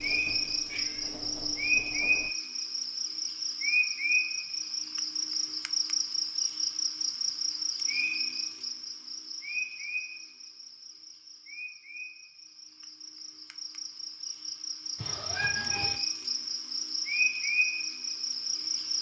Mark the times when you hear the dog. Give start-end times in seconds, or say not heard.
not heard.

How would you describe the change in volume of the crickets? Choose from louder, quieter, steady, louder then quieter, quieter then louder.
quieter then louder.